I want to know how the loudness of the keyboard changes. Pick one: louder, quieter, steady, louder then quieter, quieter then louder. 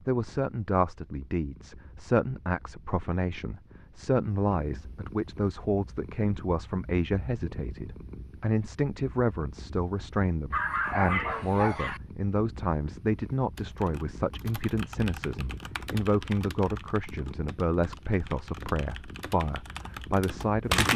quieter then louder.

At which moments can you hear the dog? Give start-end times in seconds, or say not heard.
10.5-12.0.